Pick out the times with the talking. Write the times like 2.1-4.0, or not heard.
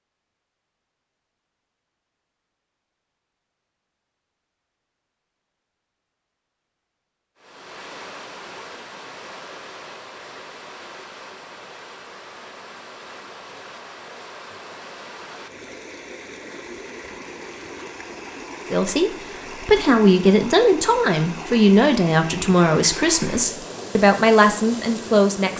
18.7-25.5.